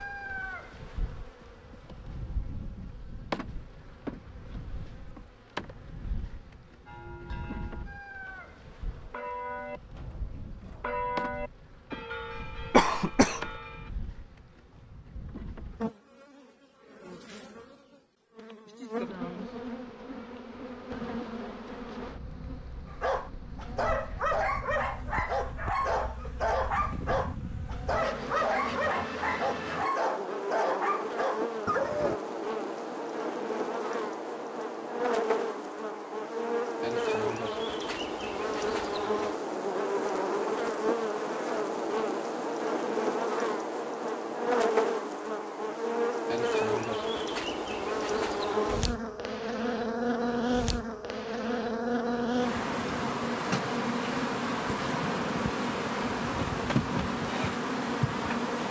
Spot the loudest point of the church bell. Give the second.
11 s.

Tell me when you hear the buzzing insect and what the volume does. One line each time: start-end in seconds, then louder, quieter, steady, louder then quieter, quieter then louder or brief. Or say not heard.
0.0-58.6 louder.